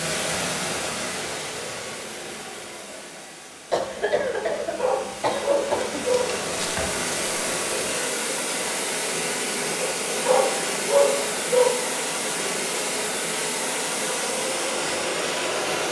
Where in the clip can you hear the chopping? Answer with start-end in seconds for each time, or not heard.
not heard.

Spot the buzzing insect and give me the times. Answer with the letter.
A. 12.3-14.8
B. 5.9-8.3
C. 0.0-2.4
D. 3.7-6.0
B.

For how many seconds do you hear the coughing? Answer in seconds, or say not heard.
2 s.